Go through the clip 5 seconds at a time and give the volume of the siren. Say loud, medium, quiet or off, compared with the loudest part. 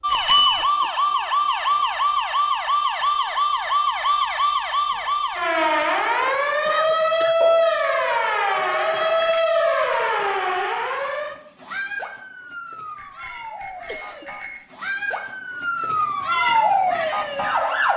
loud, loud, medium, loud.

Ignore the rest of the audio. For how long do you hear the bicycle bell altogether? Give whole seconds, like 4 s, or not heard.
4 s.